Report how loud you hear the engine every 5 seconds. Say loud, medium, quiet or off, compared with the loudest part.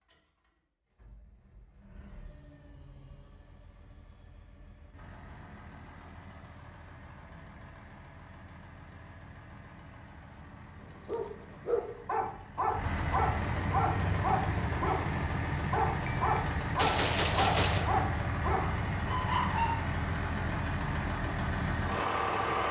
quiet, quiet, medium, loud, loud.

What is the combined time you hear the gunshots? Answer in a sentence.
The gunshots can be heard for 2 seconds in total.